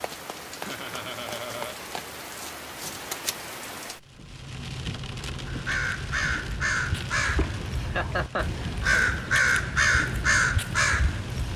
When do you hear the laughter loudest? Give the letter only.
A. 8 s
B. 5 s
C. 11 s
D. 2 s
A.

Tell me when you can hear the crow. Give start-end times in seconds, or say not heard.
5.5-11.5.